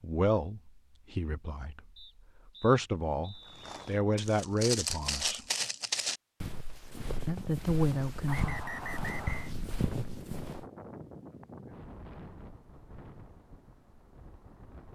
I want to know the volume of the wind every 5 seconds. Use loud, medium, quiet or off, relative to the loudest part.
off, loud, loud.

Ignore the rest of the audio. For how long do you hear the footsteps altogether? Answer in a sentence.
You can hear the footsteps for 7 seconds altogether.